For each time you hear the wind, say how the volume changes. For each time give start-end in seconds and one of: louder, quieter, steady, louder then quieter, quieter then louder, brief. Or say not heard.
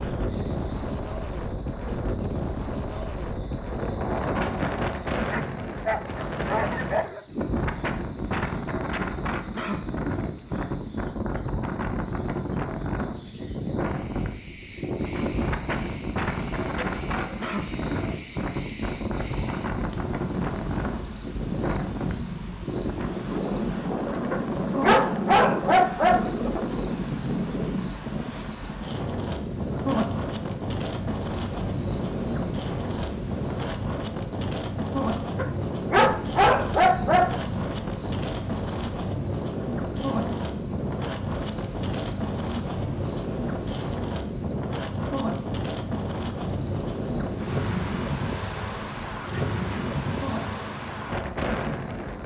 0.0-52.2 steady.